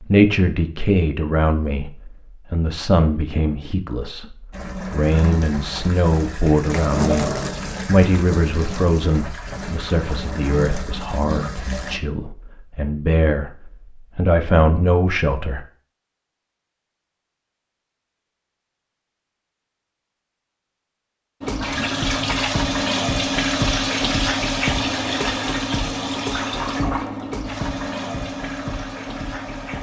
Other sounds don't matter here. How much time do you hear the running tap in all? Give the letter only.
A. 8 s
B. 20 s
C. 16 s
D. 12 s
C.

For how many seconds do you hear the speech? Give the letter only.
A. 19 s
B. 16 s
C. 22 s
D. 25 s
B.